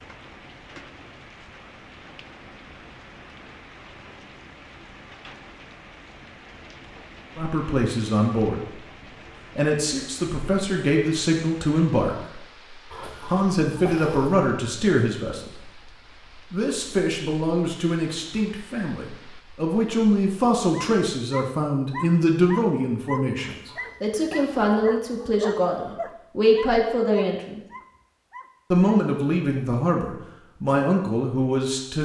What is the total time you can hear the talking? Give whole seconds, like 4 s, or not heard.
22 s.